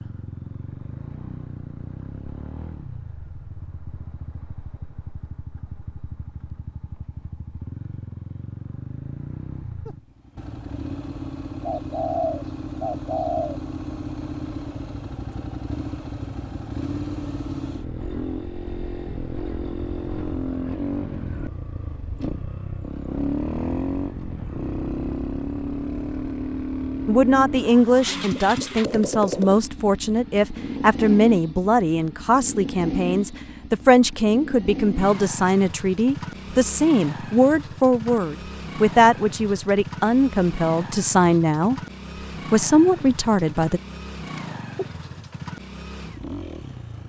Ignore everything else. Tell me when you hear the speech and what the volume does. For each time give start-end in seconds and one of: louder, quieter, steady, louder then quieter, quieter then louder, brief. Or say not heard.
27.1-41.8 steady
42.5-43.8 brief.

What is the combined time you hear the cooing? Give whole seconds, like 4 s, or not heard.
3 s.